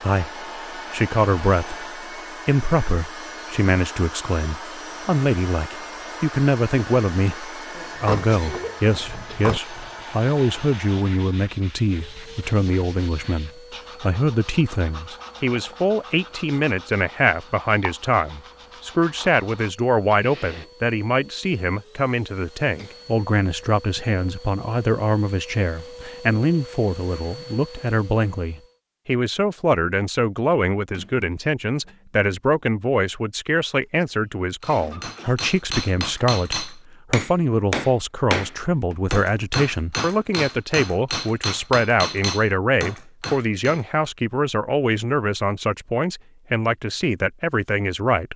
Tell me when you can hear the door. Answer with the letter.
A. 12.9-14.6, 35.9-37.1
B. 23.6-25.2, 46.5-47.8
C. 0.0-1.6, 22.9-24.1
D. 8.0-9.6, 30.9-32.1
D.